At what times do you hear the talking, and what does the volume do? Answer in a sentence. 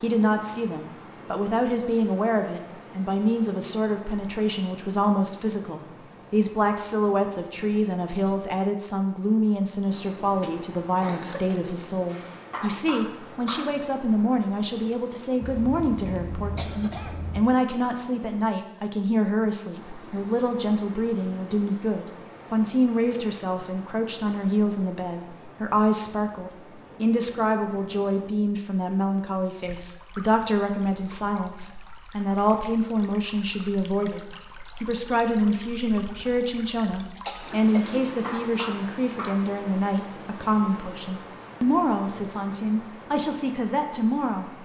The talking can be heard from 0.0 to 44.5 s, at a steady volume.